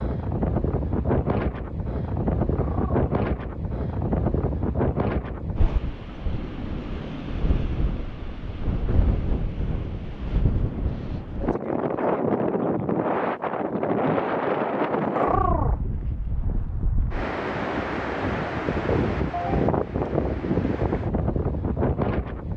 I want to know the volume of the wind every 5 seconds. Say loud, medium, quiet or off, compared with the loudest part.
loud, medium, loud, loud, loud.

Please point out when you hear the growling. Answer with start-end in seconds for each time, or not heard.
2.5-3.0, 15.2-15.8.